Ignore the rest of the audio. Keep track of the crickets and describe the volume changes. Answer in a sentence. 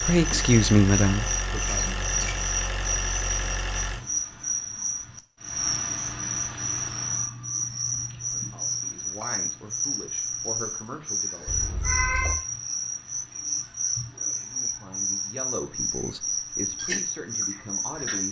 The volume of the crickets stays about the same.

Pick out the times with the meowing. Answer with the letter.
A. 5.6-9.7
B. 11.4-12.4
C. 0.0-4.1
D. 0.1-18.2
B.